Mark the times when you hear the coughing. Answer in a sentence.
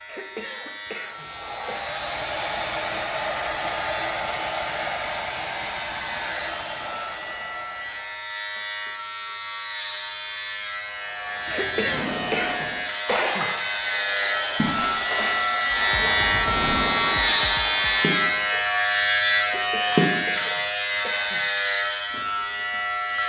The coughing can be heard from 0.1 to 1.9 s, from 11.5 to 13.5 s and from 19.4 to 21.4 s.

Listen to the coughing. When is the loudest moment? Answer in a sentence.
The volume of the coughing peaks at 12 seconds.